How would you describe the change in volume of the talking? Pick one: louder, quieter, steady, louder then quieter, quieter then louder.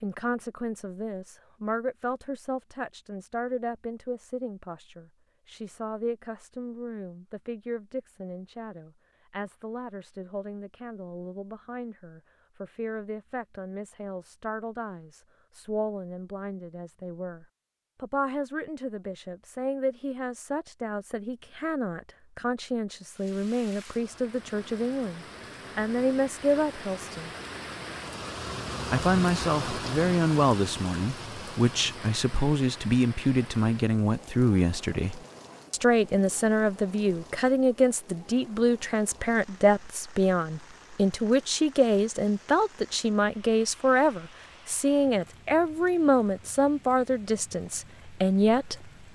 louder.